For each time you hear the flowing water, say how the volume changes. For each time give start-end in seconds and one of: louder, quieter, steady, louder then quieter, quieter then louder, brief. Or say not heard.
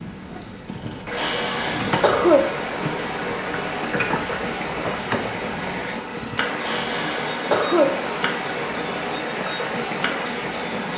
0.0-10.9 steady.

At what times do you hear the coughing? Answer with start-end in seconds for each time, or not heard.
0.7-2.5, 6.2-8.0.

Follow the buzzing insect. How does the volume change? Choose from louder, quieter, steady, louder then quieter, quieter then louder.
steady.